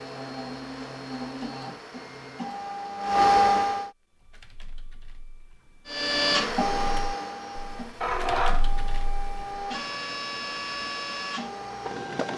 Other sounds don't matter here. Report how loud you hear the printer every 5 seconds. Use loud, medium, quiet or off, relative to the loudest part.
loud, loud, medium.